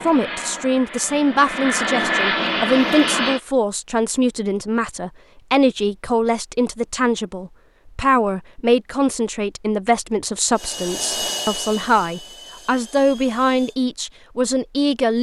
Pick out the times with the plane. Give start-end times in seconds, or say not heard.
0.0-3.4, 10.6-13.8.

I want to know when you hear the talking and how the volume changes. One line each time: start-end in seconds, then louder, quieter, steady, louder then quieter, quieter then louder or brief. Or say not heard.
0.0-15.1 steady.